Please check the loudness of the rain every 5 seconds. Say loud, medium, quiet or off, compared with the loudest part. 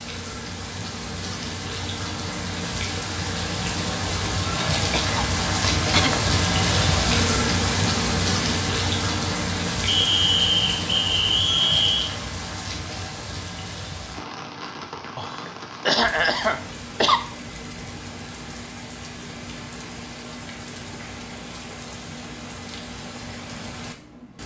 medium, loud, medium, quiet, quiet.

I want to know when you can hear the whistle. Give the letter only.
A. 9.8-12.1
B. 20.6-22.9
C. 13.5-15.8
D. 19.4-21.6
A.